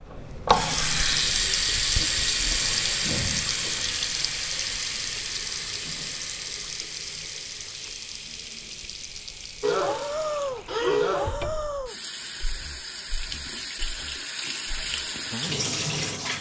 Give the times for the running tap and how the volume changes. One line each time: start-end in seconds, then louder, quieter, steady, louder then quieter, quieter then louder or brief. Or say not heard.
0.0-16.3 quieter then louder.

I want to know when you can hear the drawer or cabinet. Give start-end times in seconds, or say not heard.
11.2-11.9.